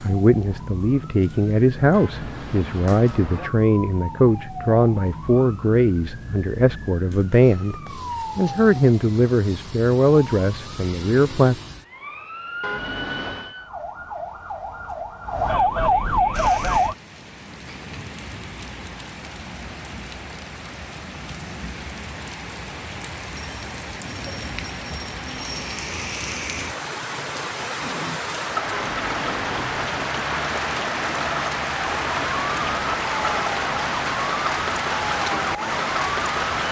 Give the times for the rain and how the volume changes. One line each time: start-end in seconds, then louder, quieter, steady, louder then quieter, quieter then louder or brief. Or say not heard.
16.3-36.6 louder.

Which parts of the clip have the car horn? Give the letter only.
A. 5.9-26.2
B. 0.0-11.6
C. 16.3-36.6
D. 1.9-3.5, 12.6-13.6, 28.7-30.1
D.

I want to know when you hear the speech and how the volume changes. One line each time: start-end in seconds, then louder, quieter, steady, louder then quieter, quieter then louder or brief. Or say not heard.
0.0-11.6 steady.